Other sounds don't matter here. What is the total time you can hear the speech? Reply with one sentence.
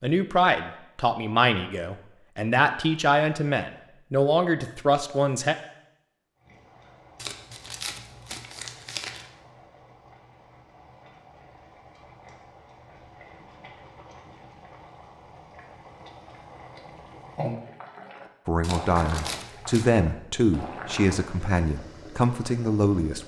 You can hear the speech for 10 seconds altogether.